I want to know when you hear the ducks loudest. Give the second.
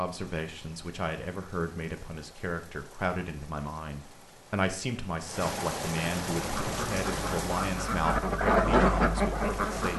9 s.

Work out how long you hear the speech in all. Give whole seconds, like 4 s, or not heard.
10 s.